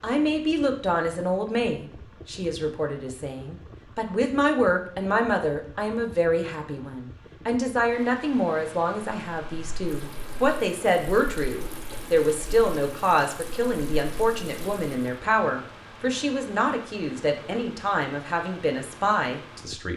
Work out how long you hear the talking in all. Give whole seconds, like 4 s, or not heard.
20 s.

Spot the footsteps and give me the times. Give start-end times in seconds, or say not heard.
not heard.